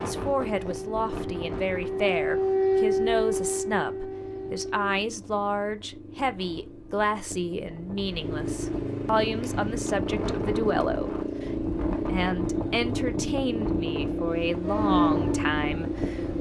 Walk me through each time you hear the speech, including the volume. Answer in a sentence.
The speech can be heard from 0.0 to 16.3 s, at a steady volume.